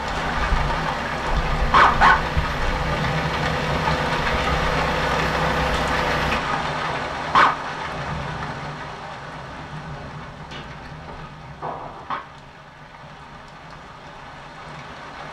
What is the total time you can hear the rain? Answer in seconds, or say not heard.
15 s.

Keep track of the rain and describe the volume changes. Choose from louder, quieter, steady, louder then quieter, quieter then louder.
quieter.